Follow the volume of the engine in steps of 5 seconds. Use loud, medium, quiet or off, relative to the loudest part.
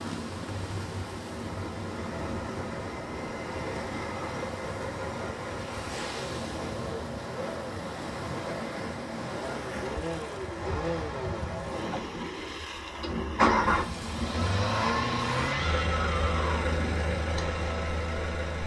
medium, medium, loud, loud.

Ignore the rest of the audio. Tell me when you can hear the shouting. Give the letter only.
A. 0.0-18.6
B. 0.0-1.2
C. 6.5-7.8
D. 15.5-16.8
D.